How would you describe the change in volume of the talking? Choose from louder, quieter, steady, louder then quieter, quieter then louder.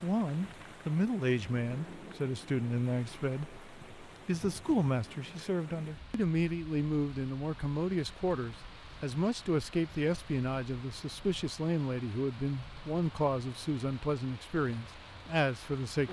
steady.